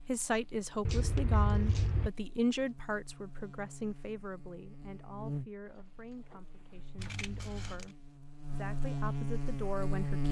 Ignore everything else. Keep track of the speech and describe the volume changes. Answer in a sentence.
The loudness of the speech goes down, then up.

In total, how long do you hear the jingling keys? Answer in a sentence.
You can hear the jingling keys for 3 seconds altogether.